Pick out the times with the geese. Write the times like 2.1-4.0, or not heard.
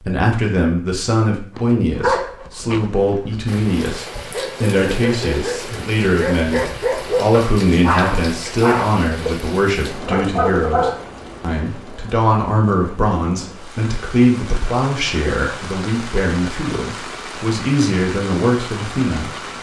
not heard.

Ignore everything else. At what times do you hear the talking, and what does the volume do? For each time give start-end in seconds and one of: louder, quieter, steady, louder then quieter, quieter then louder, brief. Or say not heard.
0.0-19.4 steady.